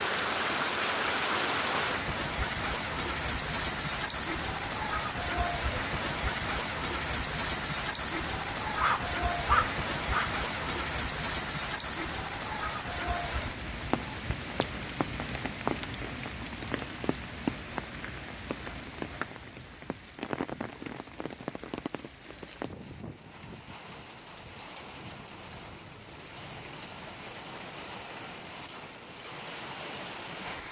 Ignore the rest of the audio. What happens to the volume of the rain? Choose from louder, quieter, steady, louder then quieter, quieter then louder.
quieter.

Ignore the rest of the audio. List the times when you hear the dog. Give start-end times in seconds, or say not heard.
8.8-10.3.